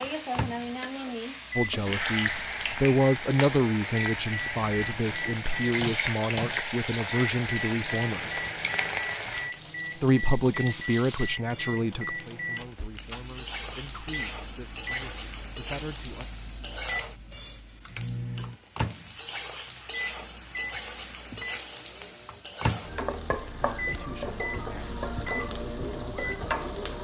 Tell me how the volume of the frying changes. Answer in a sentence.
The loudness of the frying stays about the same.